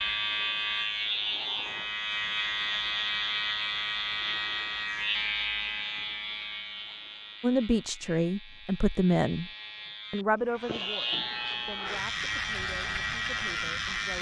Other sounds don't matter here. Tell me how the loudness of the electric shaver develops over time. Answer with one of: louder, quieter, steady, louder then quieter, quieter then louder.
quieter then louder.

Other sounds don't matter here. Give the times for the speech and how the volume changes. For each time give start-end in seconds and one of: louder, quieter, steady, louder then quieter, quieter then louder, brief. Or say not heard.
7.4-9.5 brief
10.1-14.1 quieter.